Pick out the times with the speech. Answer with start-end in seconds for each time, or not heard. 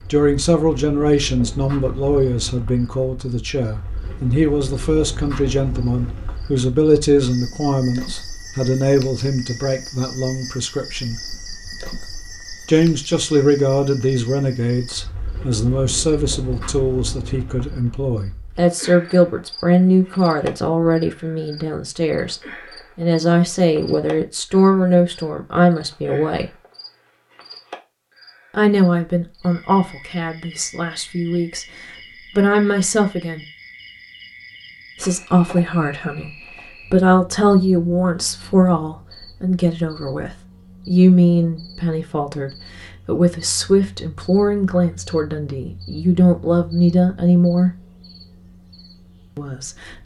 0.1-11.2, 12.7-26.5, 28.5-33.5, 35.0-47.7, 49.4-50.0.